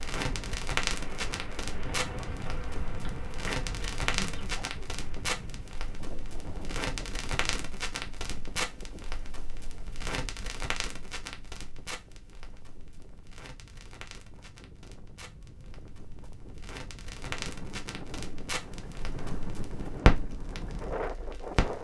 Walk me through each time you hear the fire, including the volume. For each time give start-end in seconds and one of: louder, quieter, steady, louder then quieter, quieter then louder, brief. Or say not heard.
0.0-21.7 quieter then louder.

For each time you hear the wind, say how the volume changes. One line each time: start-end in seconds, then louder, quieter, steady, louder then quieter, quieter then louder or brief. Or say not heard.
0.0-21.7 quieter then louder.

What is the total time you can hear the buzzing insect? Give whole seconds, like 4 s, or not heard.
3 s.